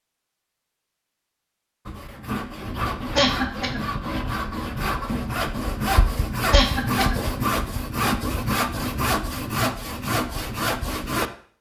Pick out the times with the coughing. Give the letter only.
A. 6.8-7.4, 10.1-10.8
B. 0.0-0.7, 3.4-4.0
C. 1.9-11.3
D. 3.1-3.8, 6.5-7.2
D.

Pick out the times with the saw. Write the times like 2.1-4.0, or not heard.
1.9-11.3.